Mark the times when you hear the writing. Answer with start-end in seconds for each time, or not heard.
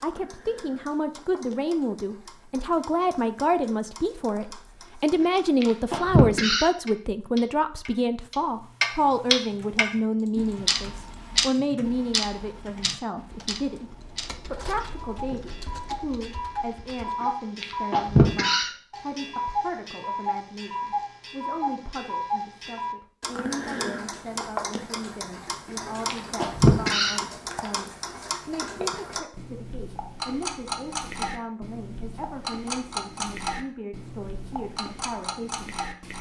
not heard.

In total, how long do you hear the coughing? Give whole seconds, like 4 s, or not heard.
3 s.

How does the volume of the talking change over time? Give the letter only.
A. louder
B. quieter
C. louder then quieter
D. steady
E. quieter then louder
B.